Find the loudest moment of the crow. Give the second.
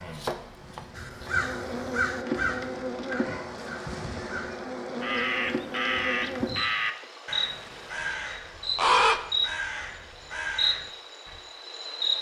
9 s.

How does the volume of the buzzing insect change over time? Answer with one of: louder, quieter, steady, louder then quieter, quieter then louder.
steady.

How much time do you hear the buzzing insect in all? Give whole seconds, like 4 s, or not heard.
12 s.